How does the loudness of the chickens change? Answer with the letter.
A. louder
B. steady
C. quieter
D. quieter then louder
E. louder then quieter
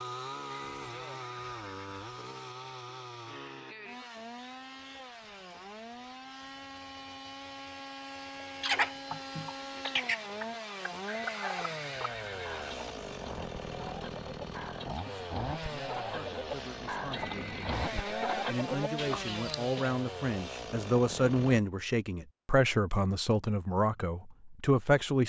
D.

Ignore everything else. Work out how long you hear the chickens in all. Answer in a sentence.
You can hear the chickens for 11 seconds altogether.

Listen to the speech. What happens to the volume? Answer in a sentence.
The volume of the speech goes up.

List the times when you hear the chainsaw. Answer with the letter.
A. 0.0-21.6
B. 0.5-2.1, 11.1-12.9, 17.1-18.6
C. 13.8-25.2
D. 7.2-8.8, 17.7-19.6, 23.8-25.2
A.